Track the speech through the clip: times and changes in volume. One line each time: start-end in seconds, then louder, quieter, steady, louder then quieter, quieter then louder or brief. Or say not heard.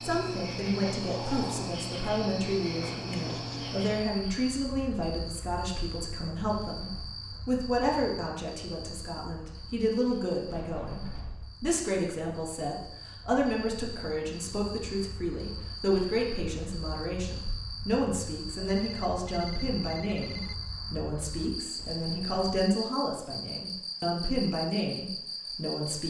0.0-26.0 steady.